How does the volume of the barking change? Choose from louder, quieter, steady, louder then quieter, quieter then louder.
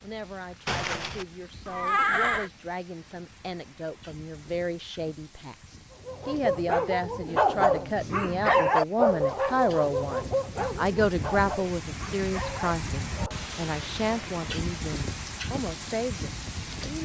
quieter.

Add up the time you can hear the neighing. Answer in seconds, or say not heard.
2 s.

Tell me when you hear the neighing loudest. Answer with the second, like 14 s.
2 s.